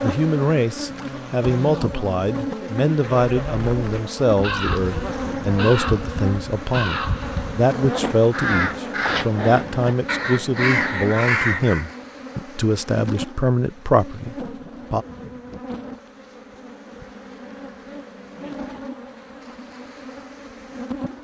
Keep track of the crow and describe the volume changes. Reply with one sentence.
The volume of the crow goes up.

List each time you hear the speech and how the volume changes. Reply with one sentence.
You can hear the speech from 0.0 to 15.1 s, at a steady volume.